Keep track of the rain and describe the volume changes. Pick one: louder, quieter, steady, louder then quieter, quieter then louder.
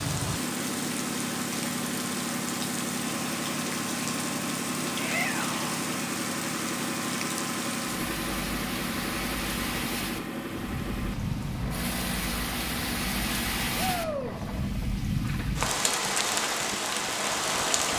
louder.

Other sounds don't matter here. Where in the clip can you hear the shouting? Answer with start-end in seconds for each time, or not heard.
5.0-5.7, 13.8-14.3.